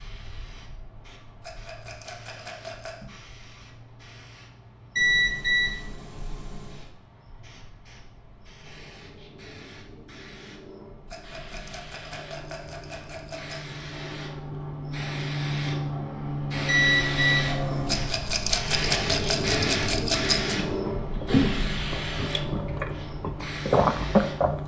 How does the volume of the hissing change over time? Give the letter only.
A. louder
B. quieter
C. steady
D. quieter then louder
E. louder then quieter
A.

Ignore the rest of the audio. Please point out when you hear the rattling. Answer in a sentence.
The rattling can be heard from 1.4 to 3.0 s, from 11.1 to 13.7 s and from 17.9 to 20.6 s.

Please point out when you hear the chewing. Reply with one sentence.
The chewing can be heard from 20.6 to 24.6 s.